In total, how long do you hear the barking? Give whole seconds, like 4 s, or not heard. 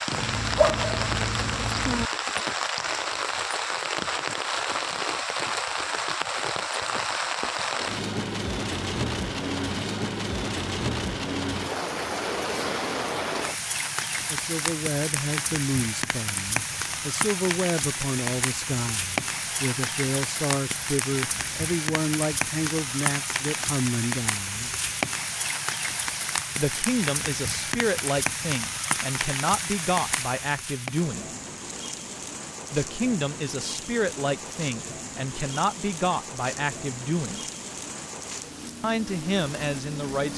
2 s.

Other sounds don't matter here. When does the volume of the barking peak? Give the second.
1 s.